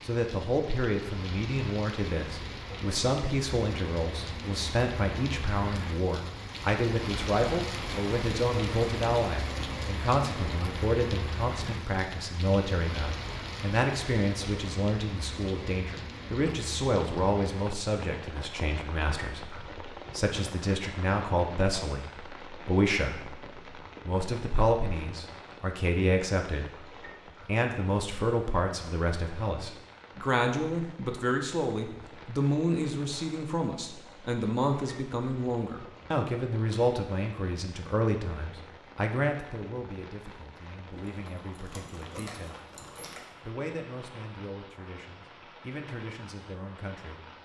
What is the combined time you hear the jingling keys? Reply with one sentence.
The jingling keys can be heard for 2 seconds in total.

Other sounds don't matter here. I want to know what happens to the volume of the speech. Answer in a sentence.
The loudness of the speech goes down.